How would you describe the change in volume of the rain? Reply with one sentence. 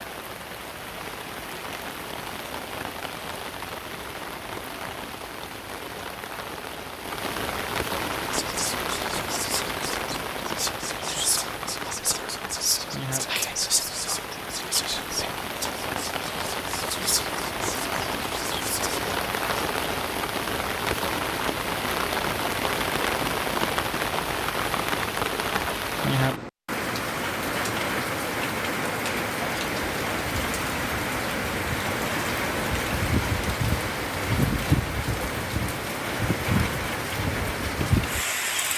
The loudness of the rain goes up.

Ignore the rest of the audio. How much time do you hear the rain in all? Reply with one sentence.
You can hear the rain for 39 seconds altogether.